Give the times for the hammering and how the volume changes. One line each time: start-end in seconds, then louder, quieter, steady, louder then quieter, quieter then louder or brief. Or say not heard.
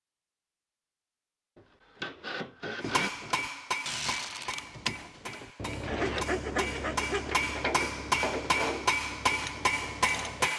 2.8-10.5 quieter then louder.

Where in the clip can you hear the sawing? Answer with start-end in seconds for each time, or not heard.
1.6-3.1, 5.8-7.3.